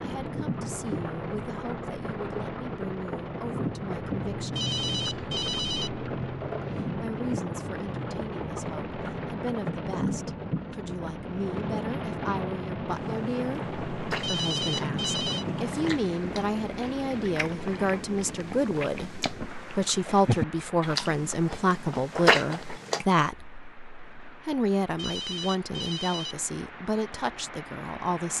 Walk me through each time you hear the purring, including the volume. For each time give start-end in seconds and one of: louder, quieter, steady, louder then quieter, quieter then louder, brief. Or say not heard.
not heard.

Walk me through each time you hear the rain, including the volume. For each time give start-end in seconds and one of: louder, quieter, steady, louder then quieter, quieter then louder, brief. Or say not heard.
0.0-28.3 quieter.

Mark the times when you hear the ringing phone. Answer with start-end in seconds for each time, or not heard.
4.5-5.9, 14.2-15.4, 24.9-26.4.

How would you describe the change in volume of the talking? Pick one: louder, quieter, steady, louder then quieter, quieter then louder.
louder.